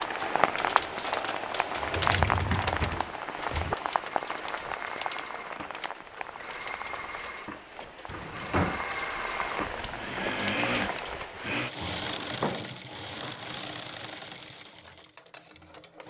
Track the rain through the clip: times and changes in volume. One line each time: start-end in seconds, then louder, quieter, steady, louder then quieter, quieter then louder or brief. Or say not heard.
0.0-11.6 quieter then louder.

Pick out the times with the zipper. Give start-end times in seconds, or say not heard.
not heard.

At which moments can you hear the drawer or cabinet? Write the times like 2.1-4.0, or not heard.
1.8-3.8, 8.1-8.9, 12.1-13.4.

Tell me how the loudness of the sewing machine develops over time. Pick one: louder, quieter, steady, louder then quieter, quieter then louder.
louder then quieter.